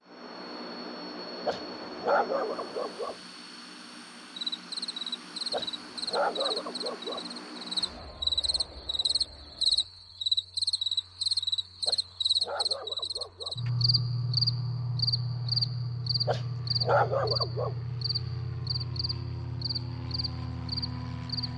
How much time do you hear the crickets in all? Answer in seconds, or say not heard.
17 s.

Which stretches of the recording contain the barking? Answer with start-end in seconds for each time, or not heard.
1.4-3.1, 5.5-7.2, 11.8-13.6, 16.2-17.8.